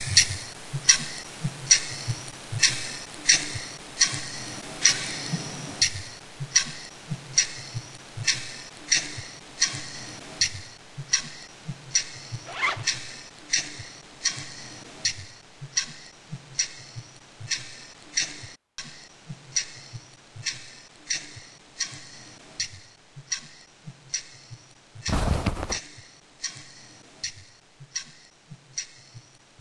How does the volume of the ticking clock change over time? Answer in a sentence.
The loudness of the ticking clock goes down.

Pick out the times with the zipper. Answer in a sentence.
You can hear the zipper from 12.4 to 12.9 s and from 25.1 to 25.8 s.